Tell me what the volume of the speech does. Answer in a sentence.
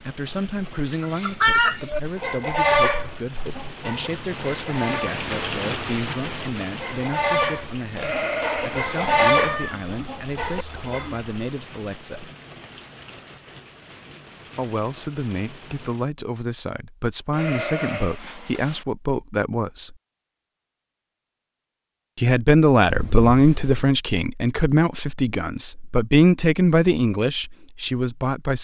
The volume of the speech goes up.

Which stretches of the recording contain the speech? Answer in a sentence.
You can hear the speech from 0.0 to 12.3 s, from 14.6 to 19.9 s and from 22.1 to 28.6 s.